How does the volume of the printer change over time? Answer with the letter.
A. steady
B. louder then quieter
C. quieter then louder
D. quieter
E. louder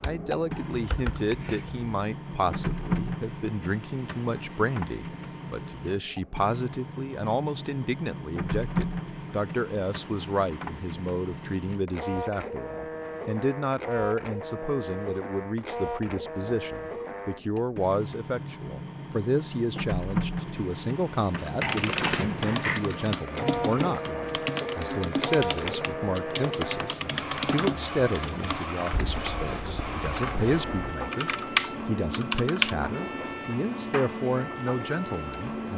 A.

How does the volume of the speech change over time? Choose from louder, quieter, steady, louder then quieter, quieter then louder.
steady.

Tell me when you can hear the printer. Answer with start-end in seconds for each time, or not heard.
0.0-35.7.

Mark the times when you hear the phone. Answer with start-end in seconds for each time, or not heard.
21.6-22.8.